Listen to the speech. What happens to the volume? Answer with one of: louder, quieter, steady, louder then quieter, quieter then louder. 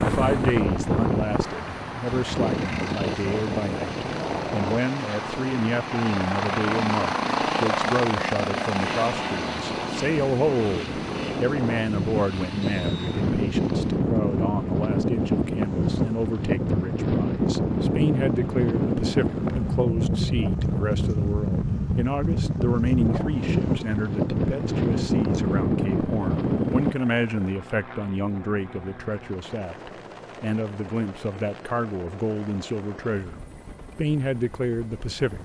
steady.